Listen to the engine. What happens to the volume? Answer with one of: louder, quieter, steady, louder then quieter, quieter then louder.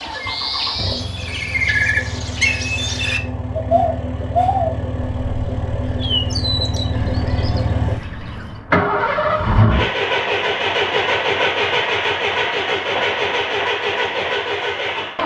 louder.